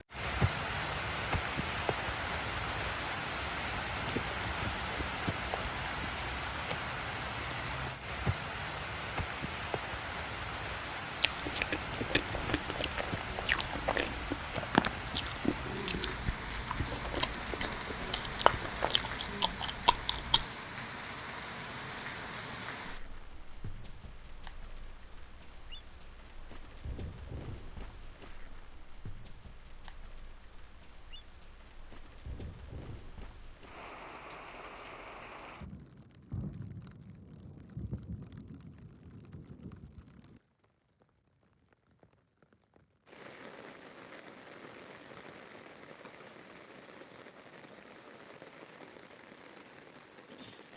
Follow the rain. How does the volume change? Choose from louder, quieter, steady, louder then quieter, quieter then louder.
quieter.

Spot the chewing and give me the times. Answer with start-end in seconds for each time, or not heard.
11.2-20.4.